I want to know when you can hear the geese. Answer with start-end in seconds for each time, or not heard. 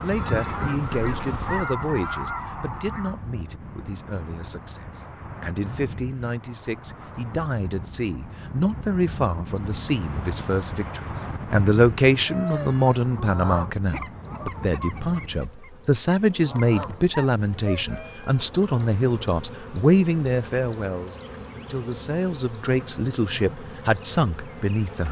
0.0-3.2, 12.2-18.1.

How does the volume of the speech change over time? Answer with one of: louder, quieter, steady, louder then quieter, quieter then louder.
louder.